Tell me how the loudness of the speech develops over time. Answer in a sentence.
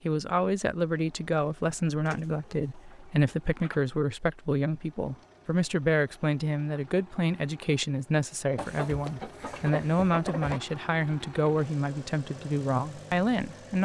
The volume of the speech stays about the same.